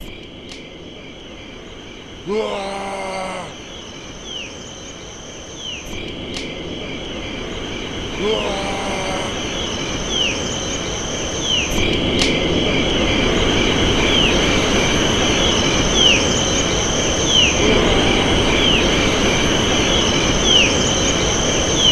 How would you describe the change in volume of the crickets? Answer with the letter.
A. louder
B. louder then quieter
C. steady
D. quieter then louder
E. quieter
A.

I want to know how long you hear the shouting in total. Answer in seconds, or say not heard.
3 s.